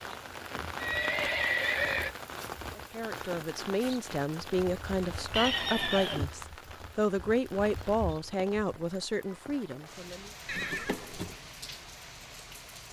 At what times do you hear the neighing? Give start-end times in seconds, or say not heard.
0.8-2.1, 5.3-6.2, 10.4-11.3.